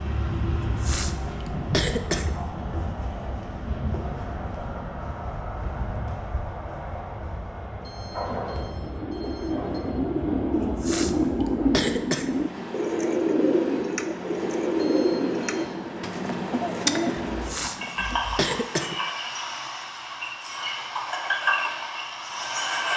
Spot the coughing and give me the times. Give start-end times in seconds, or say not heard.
0.7-2.3, 10.5-12.3, 17.3-18.9.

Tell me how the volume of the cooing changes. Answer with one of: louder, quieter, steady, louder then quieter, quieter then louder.
steady.